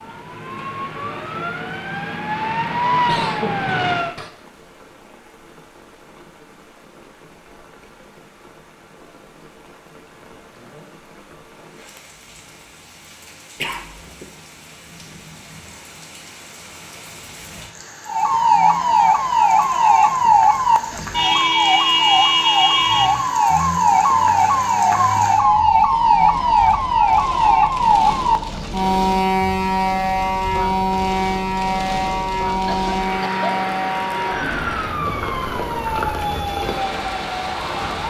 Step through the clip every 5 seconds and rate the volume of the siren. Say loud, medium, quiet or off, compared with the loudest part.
medium, off, off, loud, loud, loud, medium, medium.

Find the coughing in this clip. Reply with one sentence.
You can hear the coughing from 3.0 to 4.3 s, from 13.6 to 14.2 s and from 32.6 to 33.6 s.